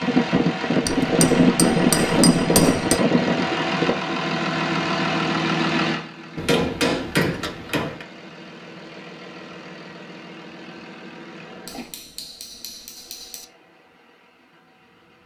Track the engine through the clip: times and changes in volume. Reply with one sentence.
The engine can be heard from 0.0 to 15.2 s, getting quieter.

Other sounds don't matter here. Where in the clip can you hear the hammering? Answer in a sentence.
You can hear the hammering from 0.8 to 3.0 s, from 6.3 to 8.1 s and from 11.7 to 13.4 s.